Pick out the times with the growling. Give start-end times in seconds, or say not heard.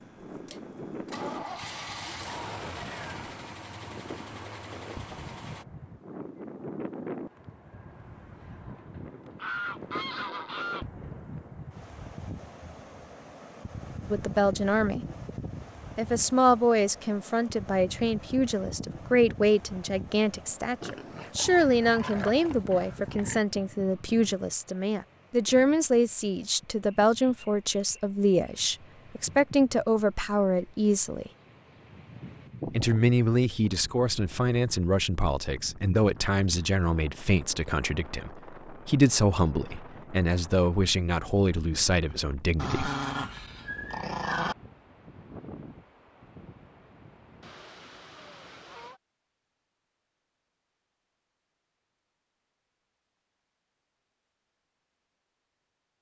20.8-23.4, 42.5-44.5.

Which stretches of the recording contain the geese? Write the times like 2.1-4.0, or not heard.
9.3-10.8, 47.4-49.0.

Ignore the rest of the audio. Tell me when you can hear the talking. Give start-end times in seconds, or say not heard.
14.1-15.0, 15.9-31.3, 32.7-42.9.